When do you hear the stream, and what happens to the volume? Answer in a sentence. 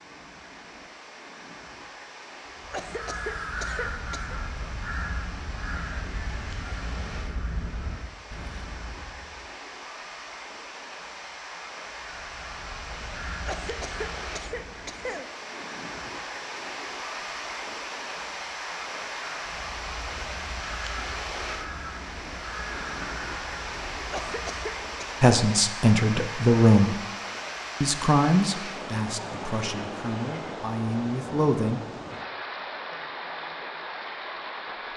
The stream can be heard from 0.0 to 34.9 s, getting louder.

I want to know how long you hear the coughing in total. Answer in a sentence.
The coughing can be heard for 5 seconds in total.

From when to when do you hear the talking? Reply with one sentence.
The talking can be heard from 25.2 to 26.9 s and from 27.8 to 31.8 s.